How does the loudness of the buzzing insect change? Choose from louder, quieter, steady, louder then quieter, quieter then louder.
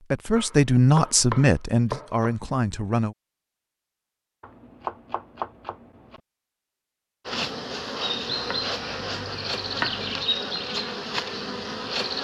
steady.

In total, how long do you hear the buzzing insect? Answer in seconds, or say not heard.
5 s.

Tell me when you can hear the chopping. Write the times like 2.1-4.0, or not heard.
0.3-2.4, 4.4-6.2, 8.3-10.3.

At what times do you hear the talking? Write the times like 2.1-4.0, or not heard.
0.0-3.1.